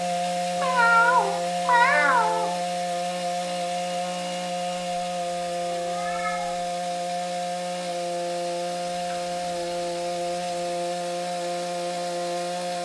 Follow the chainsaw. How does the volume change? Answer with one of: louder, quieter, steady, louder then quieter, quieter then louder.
steady.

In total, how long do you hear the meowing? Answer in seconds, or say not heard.
5 s.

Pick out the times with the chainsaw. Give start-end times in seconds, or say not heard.
0.0-12.7.